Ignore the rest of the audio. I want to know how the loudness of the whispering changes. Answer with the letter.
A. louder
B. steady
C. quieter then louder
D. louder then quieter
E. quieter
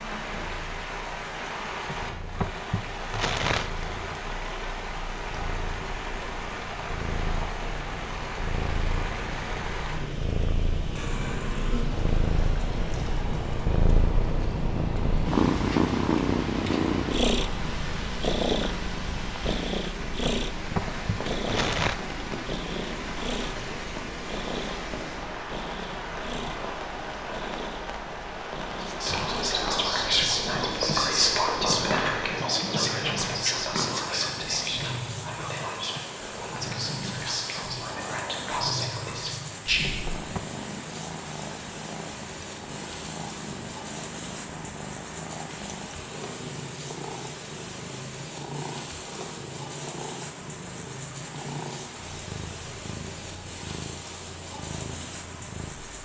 E.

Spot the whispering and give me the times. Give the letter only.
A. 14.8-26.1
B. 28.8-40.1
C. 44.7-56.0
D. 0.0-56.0
B.